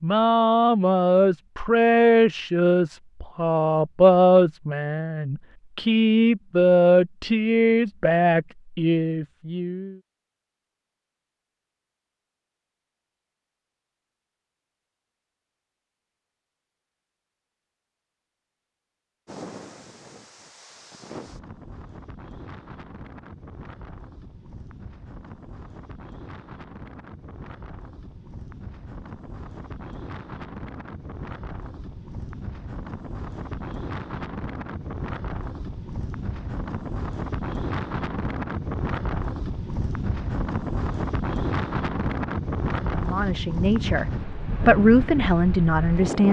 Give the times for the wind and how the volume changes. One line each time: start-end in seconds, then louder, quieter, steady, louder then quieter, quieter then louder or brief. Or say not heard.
19.2-46.2 louder.